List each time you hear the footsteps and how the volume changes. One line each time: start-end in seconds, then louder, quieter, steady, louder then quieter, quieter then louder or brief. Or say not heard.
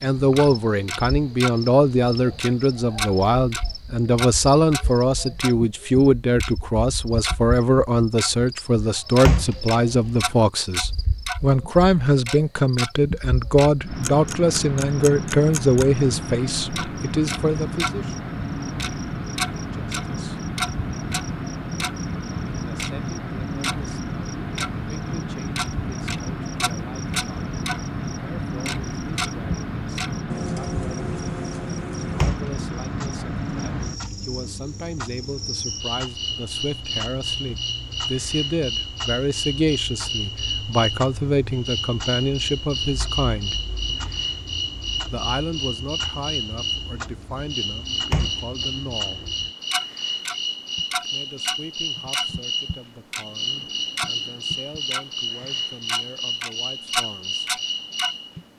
not heard.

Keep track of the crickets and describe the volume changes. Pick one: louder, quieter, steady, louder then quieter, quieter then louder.
louder.